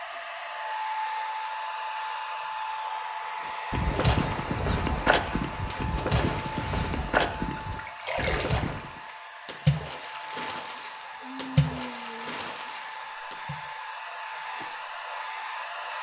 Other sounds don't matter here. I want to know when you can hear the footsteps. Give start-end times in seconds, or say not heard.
3.5-9.0.